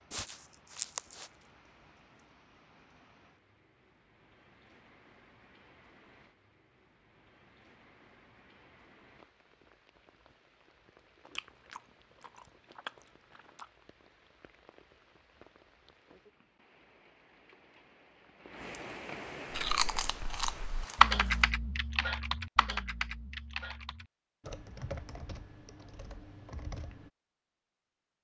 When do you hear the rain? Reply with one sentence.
You can hear the rain from 0.0 to 20.7 s.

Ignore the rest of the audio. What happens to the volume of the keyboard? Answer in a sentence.
The volume of the keyboard goes down.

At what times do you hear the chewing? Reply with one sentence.
You can hear the chewing from 0.1 to 1.3 s, from 11.2 to 13.7 s and from 19.5 to 21.4 s.